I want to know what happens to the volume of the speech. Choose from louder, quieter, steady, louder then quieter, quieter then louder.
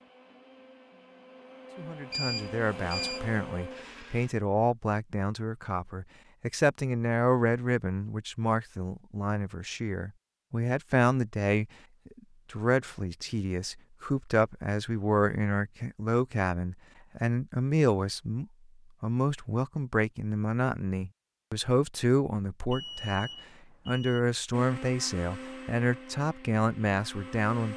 steady.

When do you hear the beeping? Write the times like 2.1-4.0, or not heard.
2.1-3.2, 22.7-24.2.